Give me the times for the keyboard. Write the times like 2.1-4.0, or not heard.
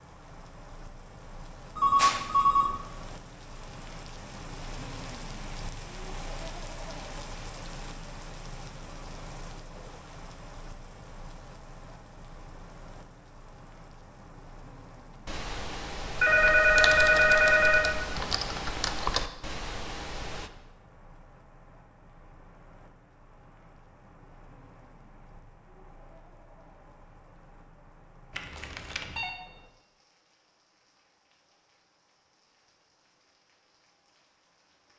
15.2-20.5.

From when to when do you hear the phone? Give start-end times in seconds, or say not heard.
1.8-2.8, 16.1-17.9, 28.4-29.4.